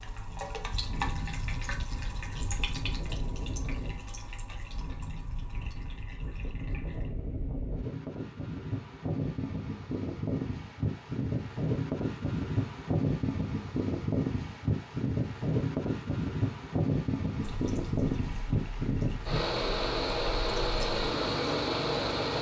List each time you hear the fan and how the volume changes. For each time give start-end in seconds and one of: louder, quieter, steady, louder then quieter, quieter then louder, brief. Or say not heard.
0.0-22.3 louder.